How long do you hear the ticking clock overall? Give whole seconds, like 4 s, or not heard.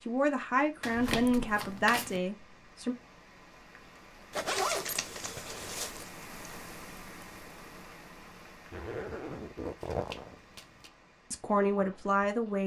not heard.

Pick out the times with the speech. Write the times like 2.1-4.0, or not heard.
0.1-3.0, 11.3-12.6.